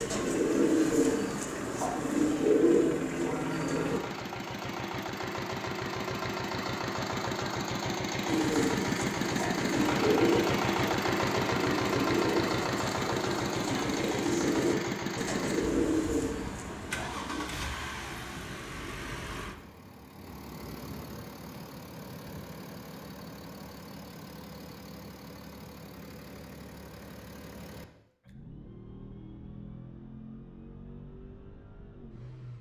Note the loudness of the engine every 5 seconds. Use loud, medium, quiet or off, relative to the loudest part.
medium, loud, loud, medium, quiet, quiet, quiet.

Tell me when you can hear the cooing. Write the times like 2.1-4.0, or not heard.
0.0-4.0, 8.2-17.5.